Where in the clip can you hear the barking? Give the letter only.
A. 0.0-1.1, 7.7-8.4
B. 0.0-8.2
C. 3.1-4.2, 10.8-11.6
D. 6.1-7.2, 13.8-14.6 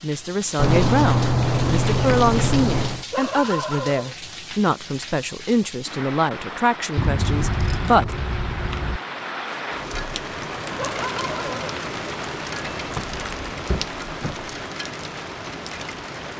C.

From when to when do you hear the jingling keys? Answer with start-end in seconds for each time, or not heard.
0.6-3.0, 7.0-9.0, 12.6-14.5.